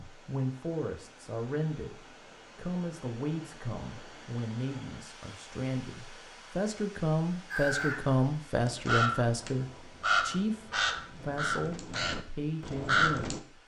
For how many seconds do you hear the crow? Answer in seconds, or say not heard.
6 s.